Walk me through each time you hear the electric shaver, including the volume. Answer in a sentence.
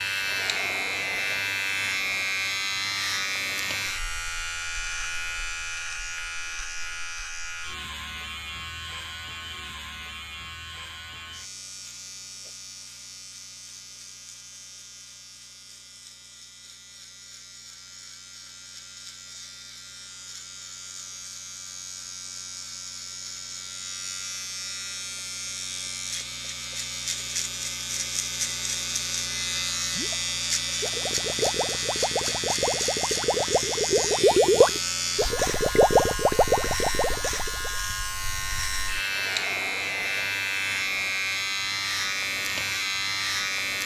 The electric shaver can be heard from 0.0 to 43.8 s, getting quieter then louder.